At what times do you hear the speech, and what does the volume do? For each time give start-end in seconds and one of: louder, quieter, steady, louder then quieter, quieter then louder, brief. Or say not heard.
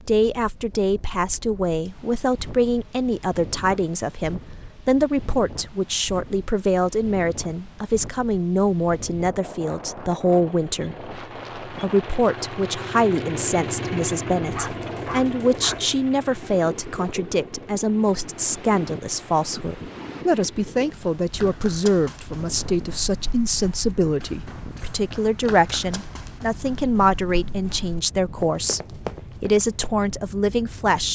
0.1-31.0 steady.